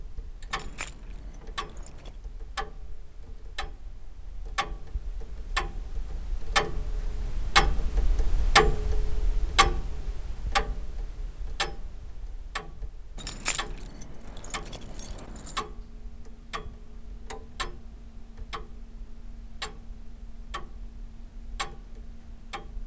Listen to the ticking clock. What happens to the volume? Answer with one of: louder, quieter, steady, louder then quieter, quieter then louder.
louder then quieter.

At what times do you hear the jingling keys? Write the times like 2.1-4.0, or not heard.
0.5-2.1, 13.2-15.6.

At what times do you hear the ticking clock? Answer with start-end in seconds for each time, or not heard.
0.0-22.8.